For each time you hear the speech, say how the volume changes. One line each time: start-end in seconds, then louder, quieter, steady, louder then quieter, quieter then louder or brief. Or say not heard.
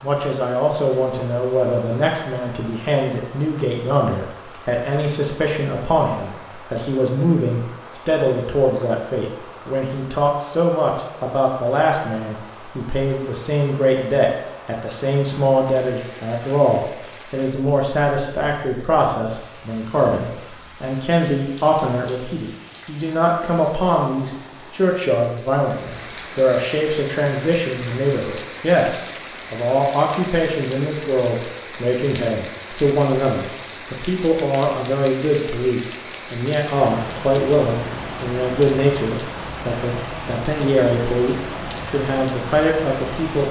0.0-43.4 steady.